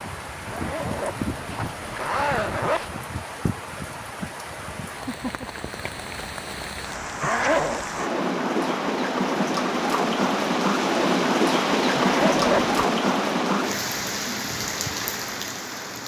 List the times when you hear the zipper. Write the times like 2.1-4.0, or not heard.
0.5-3.0, 7.2-7.8, 11.9-12.8.